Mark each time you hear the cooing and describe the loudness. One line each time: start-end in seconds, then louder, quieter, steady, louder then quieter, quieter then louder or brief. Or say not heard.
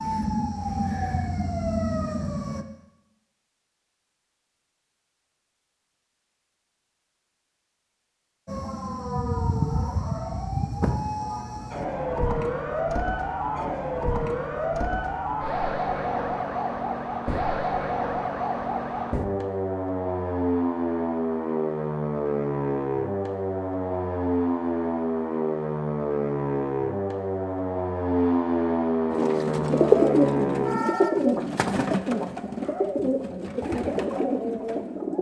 29.1-35.1 quieter.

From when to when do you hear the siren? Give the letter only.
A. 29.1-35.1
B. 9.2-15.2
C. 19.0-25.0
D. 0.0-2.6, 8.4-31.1
D.